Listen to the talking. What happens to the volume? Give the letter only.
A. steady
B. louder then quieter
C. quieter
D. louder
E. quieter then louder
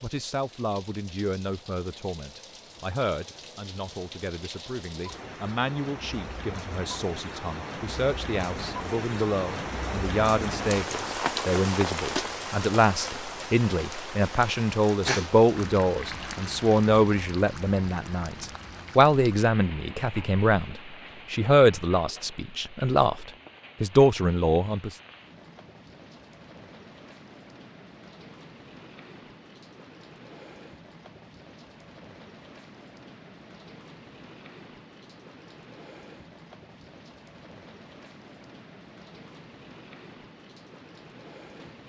D.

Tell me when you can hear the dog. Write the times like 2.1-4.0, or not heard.
not heard.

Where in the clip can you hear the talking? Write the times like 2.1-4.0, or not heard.
0.0-24.9.